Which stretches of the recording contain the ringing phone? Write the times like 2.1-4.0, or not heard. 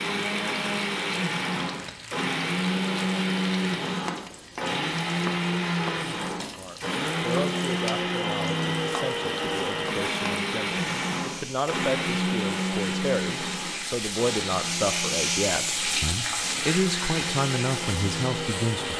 not heard.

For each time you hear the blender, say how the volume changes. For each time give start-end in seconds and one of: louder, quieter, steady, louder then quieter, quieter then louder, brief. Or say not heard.
0.0-18.9 quieter.